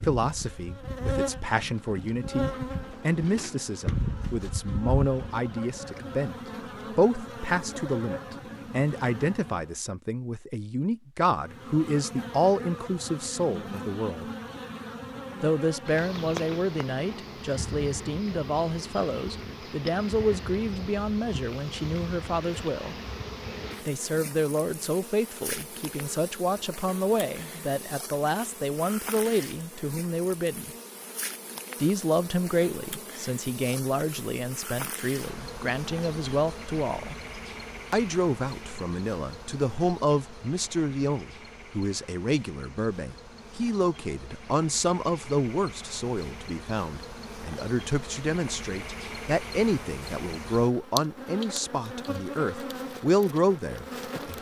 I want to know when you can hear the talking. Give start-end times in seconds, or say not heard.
0.0-14.2, 15.4-22.9, 23.9-30.7, 31.8-37.1, 37.9-54.3.